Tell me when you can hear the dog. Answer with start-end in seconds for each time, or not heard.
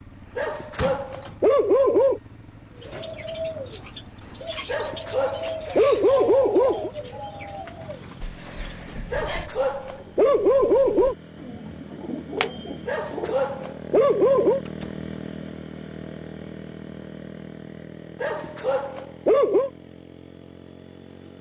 0.3-2.2, 4.7-6.9, 9.1-11.2, 12.8-14.6, 18.2-19.7.